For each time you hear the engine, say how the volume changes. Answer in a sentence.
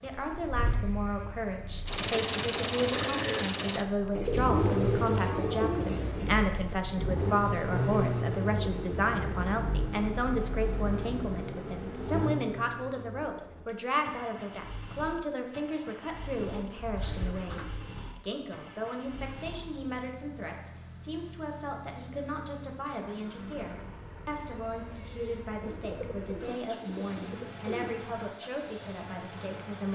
The engine can be heard from 0.0 to 29.9 s, getting quieter.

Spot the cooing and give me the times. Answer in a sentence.
You can hear the cooing from 4.2 to 6.4 s, from 16.5 to 17.9 s and from 25.6 to 28.1 s.